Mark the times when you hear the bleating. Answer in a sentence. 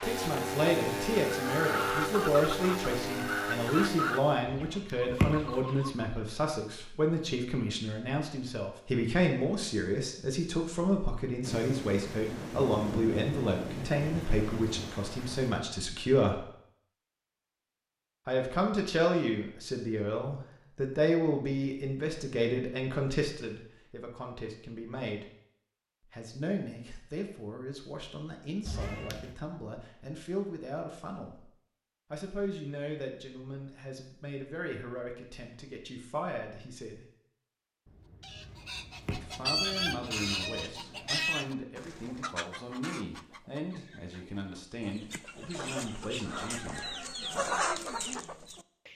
You can't hear the bleating here.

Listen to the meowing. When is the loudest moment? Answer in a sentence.
The volume of the meowing peaks at 5 seconds.